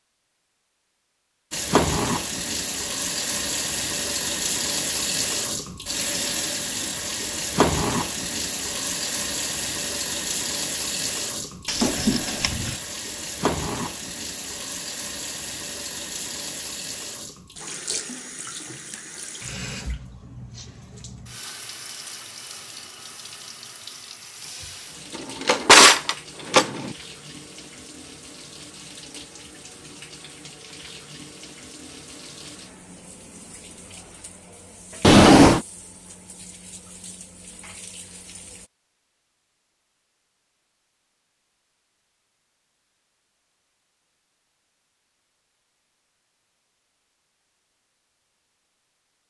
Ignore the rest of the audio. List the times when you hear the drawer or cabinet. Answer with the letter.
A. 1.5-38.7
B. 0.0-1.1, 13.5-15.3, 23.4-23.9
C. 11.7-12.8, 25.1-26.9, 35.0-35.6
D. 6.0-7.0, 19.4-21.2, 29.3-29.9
C.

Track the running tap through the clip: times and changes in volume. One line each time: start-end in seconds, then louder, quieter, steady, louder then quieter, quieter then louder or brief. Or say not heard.
1.5-38.7 quieter.